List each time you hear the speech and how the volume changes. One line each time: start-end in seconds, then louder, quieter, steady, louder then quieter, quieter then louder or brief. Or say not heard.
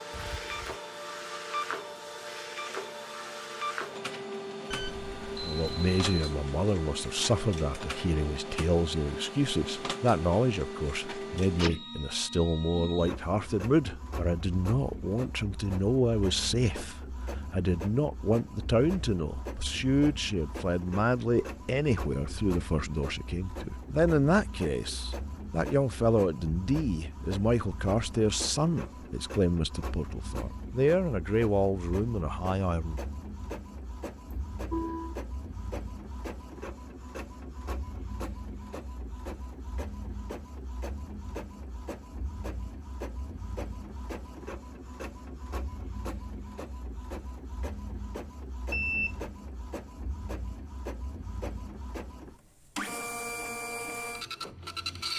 5.4-33.0 steady.